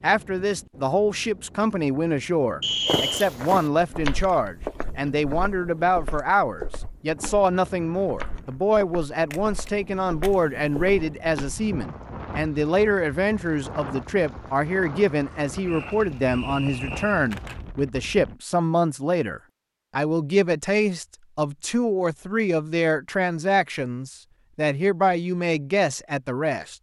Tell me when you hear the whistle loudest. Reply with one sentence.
The volume of the whistle peaks at 3 seconds.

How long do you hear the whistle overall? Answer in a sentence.
You can hear the whistle for 2 seconds altogether.